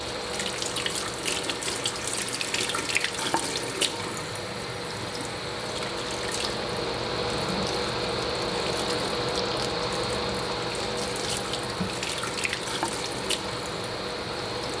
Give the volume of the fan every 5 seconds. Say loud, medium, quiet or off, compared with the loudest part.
medium, loud, loud.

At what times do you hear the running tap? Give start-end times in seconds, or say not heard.
0.0-14.7.